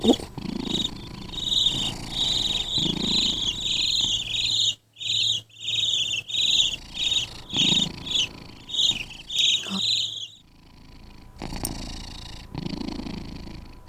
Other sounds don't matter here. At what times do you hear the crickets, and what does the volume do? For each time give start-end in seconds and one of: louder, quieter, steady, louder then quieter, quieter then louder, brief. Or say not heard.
0.0-10.3 steady.